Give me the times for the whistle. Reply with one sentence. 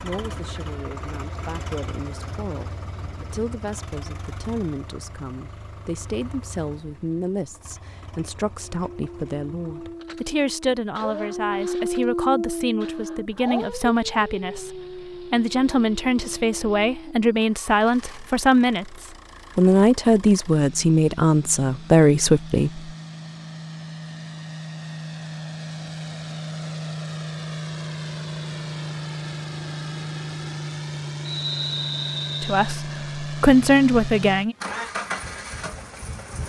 The whistle can be heard from 31.2 to 32.8 s.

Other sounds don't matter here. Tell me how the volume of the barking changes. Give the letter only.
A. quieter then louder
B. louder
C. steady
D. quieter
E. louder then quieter
E.